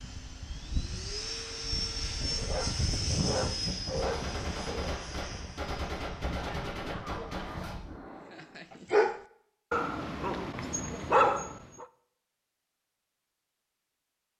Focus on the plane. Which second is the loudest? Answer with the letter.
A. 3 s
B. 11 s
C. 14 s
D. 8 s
A.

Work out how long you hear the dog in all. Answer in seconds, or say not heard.
6 s.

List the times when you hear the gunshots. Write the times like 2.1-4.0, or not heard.
4.0-7.8.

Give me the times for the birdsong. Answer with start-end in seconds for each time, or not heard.
not heard.